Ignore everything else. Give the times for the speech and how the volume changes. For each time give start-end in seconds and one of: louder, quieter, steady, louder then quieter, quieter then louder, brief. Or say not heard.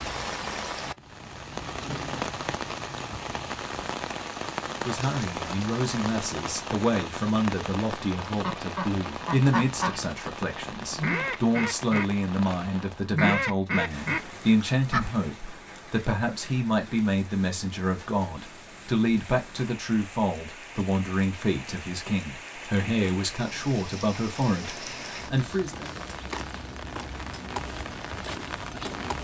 4.8-25.9 steady.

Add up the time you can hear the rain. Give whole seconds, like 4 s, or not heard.
29 s.